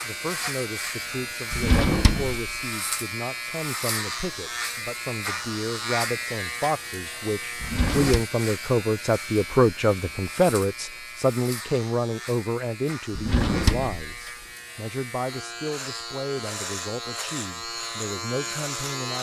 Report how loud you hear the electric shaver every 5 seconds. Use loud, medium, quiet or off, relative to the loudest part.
loud, loud, medium, loud.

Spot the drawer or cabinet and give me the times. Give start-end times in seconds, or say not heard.
1.5-2.4, 7.6-8.2, 13.2-14.0.